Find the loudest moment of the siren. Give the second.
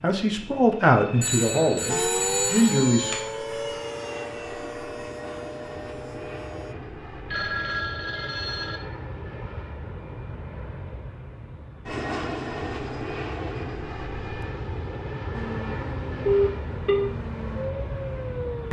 2 s.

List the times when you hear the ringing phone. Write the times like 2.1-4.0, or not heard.
1.2-3.2, 7.2-8.8, 16.2-17.1.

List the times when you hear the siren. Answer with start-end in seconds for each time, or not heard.
1.9-6.8, 15.3-18.6.